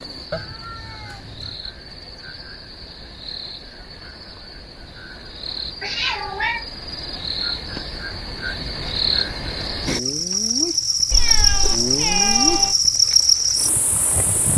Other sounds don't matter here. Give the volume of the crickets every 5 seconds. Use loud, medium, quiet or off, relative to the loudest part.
quiet, medium, loud.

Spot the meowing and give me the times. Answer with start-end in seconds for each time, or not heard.
0.3-1.6, 5.8-6.7, 11.1-12.8.